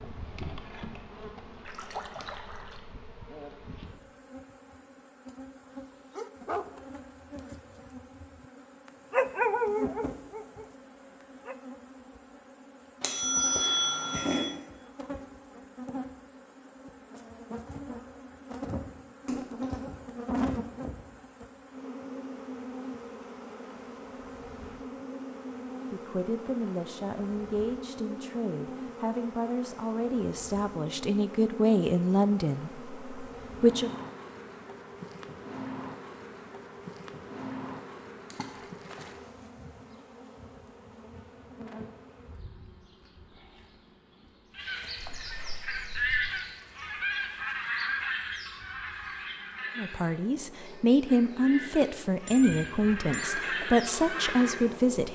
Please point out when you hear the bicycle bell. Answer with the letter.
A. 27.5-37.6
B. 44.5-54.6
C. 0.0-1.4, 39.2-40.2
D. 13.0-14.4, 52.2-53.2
D.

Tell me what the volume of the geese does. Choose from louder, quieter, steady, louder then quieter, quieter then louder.
quieter then louder.